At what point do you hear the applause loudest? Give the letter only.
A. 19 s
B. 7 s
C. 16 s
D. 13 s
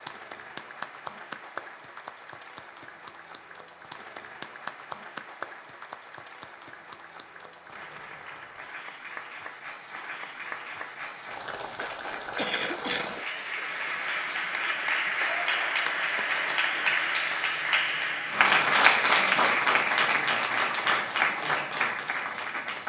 A.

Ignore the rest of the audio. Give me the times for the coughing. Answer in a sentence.
The coughing can be heard from 12.3 to 13.2 s.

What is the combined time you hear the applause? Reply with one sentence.
The applause can be heard for 23 seconds in total.